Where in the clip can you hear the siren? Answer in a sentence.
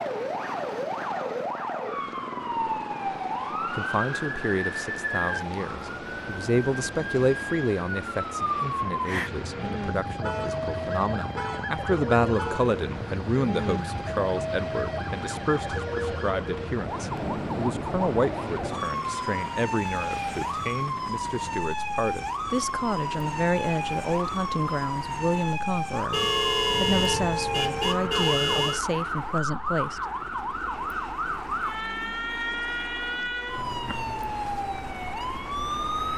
You can hear the siren from 0.0 to 36.1 s.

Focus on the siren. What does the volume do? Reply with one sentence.
The volume of the siren stays about the same.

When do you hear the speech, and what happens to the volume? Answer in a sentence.
The speech can be heard from 3.8 to 30.1 s, at a steady volume.